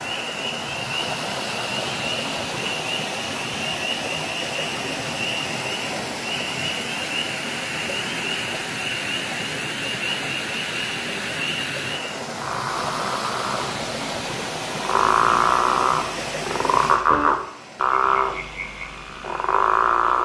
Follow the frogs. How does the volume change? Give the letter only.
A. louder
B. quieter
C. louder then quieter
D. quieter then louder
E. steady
A.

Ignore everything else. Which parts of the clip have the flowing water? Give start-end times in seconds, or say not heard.
0.0-20.1.